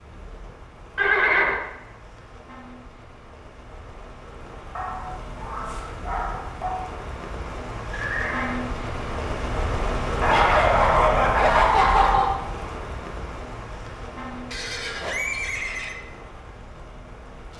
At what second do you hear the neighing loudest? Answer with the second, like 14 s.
1 s.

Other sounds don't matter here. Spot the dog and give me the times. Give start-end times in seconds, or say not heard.
4.8-6.8, 10.2-12.4.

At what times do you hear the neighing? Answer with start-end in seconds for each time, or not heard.
0.9-1.6, 7.9-8.6, 14.5-15.9.